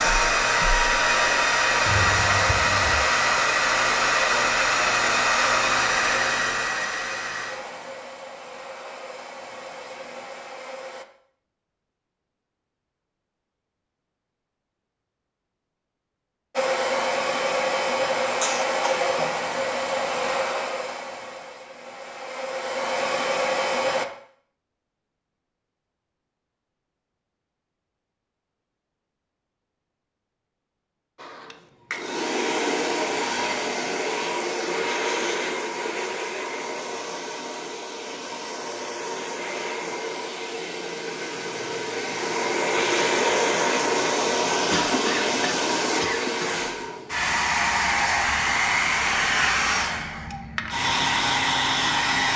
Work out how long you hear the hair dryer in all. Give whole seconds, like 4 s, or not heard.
40 s.